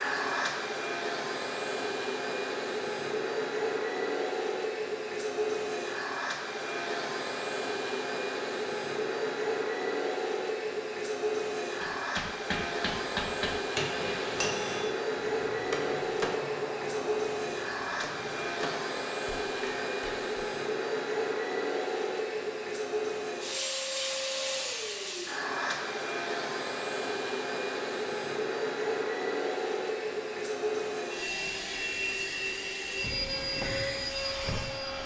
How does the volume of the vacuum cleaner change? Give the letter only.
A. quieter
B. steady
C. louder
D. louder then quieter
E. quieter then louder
B.